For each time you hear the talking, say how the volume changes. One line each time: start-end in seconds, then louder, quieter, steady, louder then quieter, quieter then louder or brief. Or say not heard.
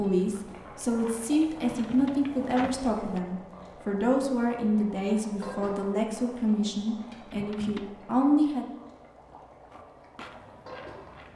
0.0-8.7 steady.